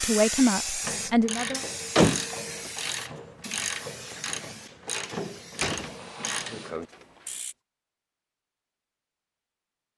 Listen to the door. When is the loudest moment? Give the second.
2 s.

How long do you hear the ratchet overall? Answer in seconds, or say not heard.
7 s.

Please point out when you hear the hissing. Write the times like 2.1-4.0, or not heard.
0.0-7.4.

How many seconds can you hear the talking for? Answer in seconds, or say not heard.
2 s.